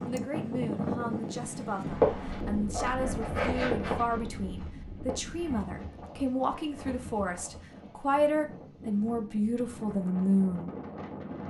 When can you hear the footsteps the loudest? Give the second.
2 s.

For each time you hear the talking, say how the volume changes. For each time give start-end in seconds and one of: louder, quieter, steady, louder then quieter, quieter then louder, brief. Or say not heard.
0.1-10.7 louder.